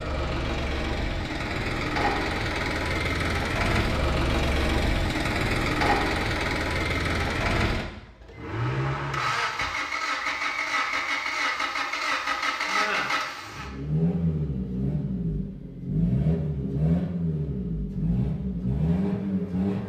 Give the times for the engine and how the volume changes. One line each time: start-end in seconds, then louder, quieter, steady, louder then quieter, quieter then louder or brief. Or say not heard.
0.0-19.8 steady.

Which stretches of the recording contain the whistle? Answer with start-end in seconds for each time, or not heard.
10.2-11.7.